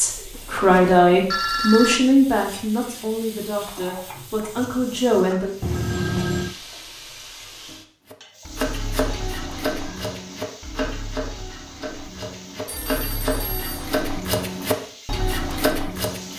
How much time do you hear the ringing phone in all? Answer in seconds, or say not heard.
4 s.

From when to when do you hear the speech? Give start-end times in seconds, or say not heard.
0.0-5.5.